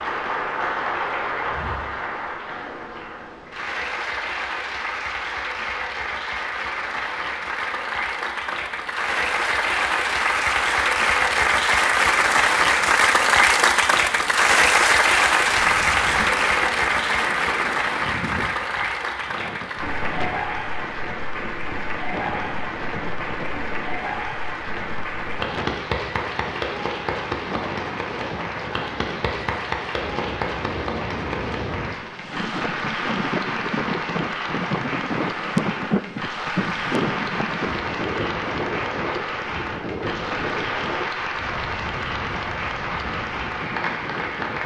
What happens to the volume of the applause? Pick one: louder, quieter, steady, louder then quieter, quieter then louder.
louder then quieter.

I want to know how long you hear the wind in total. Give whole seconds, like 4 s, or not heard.
29 s.